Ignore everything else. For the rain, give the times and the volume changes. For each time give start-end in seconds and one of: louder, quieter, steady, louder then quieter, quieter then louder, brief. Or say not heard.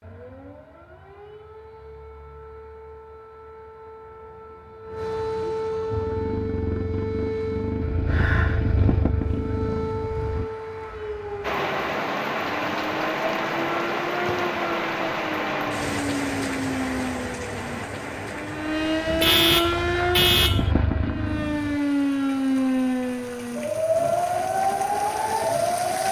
11.4-26.0 quieter.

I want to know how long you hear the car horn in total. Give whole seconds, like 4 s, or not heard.
2 s.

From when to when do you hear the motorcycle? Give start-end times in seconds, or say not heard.
5.9-10.4, 19.6-21.8.